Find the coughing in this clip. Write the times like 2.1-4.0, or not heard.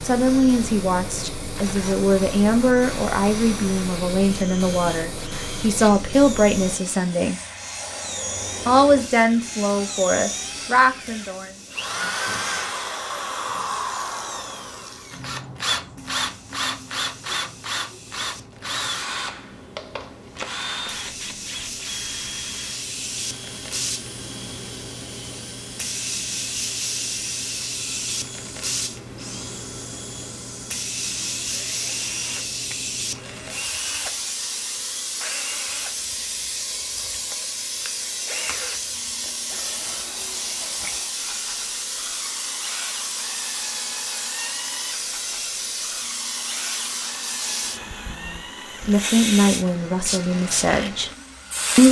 not heard.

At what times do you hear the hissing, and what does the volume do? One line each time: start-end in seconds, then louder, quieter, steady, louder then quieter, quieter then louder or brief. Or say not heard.
0.0-51.8 quieter then louder.